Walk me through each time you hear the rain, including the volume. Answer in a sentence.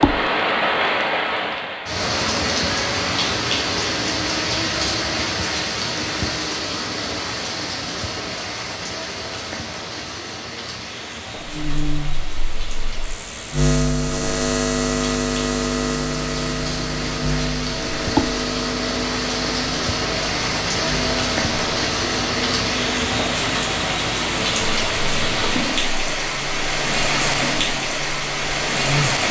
You can hear the rain from 0.0 to 29.2 s, getting quieter then louder.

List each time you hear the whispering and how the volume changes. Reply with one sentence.
The whispering can't be heard in this clip.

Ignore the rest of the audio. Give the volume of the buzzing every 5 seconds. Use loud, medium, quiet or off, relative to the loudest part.
off, off, loud, loud, medium, medium.